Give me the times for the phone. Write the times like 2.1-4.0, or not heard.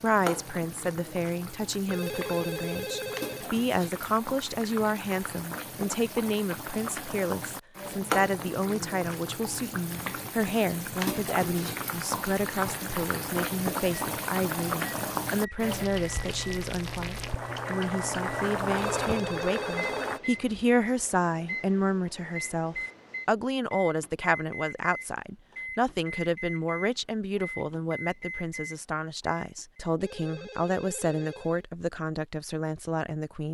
1.9-3.5, 18.8-20.2, 30.0-31.6.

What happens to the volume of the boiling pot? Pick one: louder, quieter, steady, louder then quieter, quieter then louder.
louder.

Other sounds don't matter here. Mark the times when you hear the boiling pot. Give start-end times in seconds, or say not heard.
0.0-20.2.